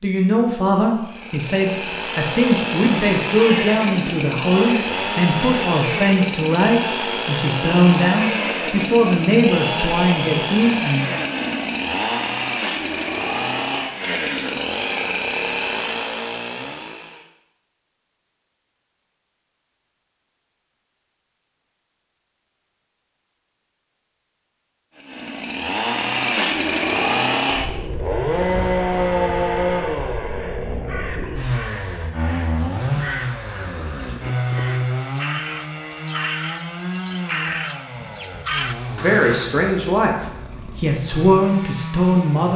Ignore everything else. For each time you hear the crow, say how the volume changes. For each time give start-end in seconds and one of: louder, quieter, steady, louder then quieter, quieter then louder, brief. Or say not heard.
30.4-39.5 louder.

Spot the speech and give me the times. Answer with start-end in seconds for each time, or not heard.
0.0-11.1, 38.9-42.5.